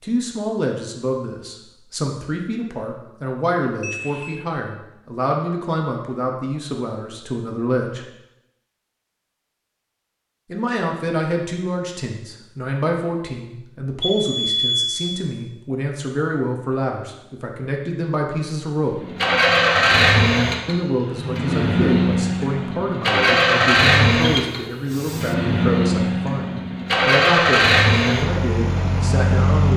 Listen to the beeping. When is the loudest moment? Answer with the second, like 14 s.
15 s.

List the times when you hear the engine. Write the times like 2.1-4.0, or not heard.
18.9-29.7.